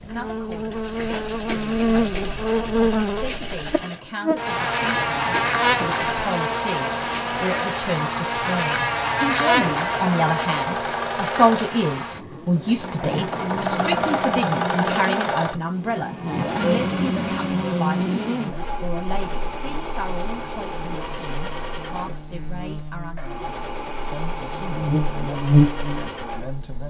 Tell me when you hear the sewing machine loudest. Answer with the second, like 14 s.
14 s.